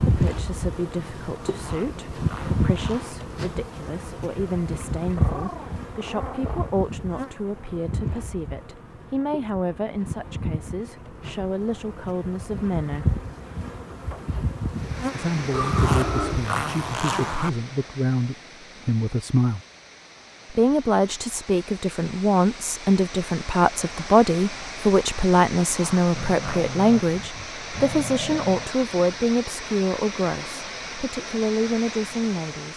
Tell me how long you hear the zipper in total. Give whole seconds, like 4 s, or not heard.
5 s.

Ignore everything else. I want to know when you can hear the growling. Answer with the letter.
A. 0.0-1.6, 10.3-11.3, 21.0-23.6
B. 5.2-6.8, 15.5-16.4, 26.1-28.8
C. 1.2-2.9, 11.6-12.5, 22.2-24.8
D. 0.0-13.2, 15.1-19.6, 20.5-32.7
B.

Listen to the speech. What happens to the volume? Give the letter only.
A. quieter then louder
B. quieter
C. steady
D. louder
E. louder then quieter
D.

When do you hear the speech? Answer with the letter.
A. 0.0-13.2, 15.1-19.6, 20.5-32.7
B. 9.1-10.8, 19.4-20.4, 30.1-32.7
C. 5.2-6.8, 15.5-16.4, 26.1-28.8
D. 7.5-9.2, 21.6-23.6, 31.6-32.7
A.